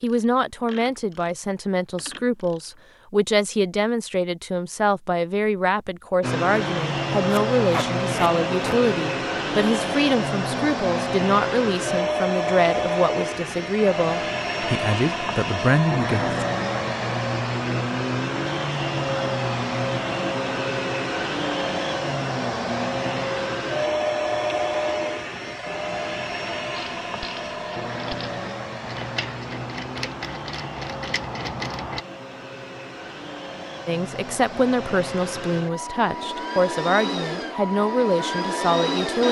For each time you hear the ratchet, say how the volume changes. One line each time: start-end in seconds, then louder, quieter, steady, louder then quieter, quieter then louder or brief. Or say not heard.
0.0-2.9 brief
26.7-32.0 louder.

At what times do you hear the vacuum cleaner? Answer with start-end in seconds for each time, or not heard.
6.2-39.2.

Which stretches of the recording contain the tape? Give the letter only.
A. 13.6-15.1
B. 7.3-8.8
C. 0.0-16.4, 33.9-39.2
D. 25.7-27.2
B.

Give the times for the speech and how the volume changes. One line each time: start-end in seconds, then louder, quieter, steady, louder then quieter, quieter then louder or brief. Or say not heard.
0.0-16.4 steady
33.9-39.2 steady.